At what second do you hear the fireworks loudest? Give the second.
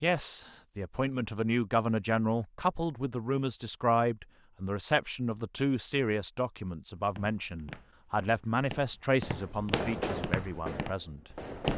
10 s.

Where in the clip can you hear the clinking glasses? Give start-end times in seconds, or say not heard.
not heard.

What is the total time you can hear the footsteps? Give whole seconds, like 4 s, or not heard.
5 s.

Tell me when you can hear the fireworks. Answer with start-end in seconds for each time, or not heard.
9.2-11.7.